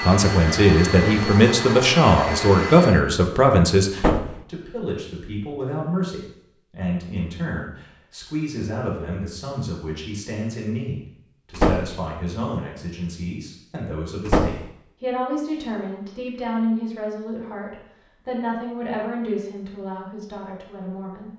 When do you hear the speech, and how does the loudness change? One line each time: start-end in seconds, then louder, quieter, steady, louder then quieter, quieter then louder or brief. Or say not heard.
0.0-21.3 quieter.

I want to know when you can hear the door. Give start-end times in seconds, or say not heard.
4.0-4.4, 11.6-12.0, 14.2-14.7.